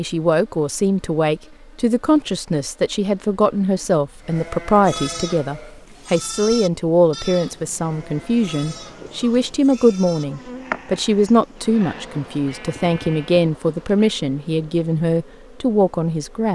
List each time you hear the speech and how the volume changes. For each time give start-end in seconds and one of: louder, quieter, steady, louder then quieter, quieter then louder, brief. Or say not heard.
0.0-16.5 steady.